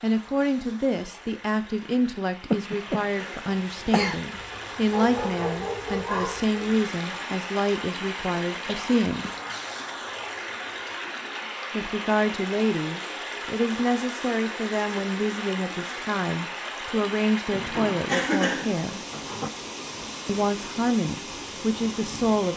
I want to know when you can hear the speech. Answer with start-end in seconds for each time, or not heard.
0.0-9.3, 11.7-19.0, 20.2-22.5.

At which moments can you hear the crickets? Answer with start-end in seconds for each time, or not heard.
not heard.